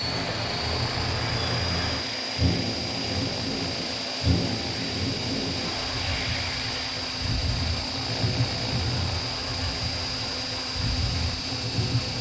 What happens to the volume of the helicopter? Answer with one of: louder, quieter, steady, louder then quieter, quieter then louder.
steady.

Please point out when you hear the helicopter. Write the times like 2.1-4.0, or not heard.
0.0-12.1.